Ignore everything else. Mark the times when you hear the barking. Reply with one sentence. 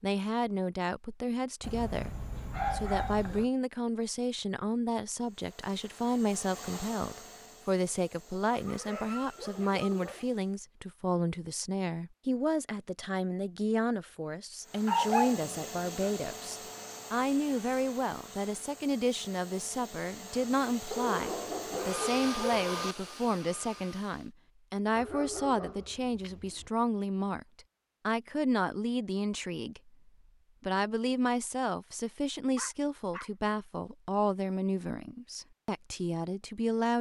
The barking can be heard from 1.6 to 3.5 s, from 8.5 to 10.2 s, from 14.8 to 16.3 s, from 20.9 to 22.9 s, from 24.9 to 26.7 s and from 32.5 to 33.3 s.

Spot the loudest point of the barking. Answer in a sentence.
The loudest moment of the barking is at 15 seconds.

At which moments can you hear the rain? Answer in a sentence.
The rain can't be heard in this clip.